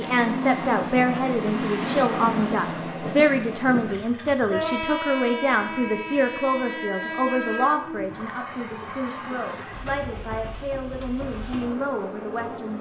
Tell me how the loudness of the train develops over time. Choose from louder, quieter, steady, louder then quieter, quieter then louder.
quieter.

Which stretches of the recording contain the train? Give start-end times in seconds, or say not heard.
0.0-12.7.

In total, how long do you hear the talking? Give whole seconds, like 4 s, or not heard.
13 s.